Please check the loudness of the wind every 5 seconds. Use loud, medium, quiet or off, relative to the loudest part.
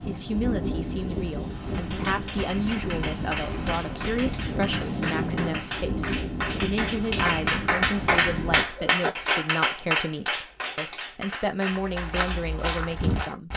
loud, loud, off.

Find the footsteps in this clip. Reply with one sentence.
The footsteps can be heard from 11.7 to 13.5 s.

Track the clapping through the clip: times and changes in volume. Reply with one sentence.
The clapping can be heard from 1.7 to 12.4 s, getting louder then quieter.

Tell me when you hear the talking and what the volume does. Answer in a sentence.
You can hear the talking from 0.1 to 13.5 s, at a steady volume.